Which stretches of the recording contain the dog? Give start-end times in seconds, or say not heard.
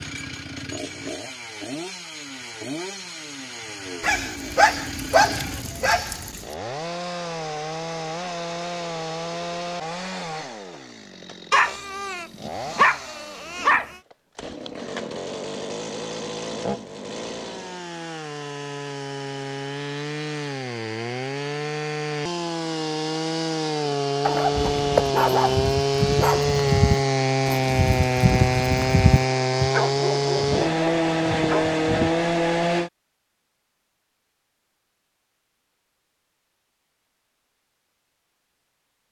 4.0-6.5, 11.5-13.9, 24.2-26.6, 29.7-32.1.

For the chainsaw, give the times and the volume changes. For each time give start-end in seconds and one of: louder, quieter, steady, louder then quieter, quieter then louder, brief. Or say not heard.
0.0-32.9 louder.